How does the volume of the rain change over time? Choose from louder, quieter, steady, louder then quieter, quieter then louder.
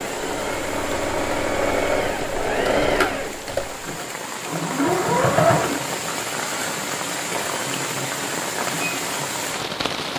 louder.